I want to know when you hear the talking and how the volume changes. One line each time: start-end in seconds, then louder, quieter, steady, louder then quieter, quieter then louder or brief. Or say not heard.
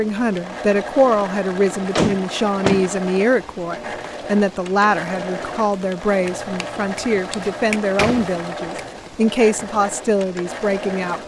0.0-11.2 steady.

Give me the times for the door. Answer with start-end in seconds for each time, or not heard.
1.9-2.9, 7.4-8.8.